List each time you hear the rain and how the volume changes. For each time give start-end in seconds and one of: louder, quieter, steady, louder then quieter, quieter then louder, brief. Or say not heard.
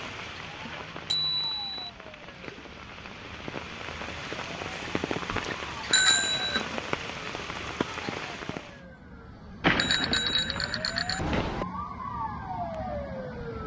0.0-8.8 louder.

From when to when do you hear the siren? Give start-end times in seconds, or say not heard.
0.1-13.6.